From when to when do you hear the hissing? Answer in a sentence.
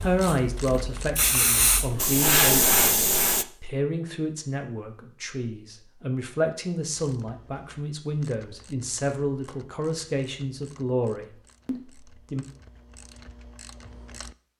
The hissing can be heard from 0.0 to 3.5 s.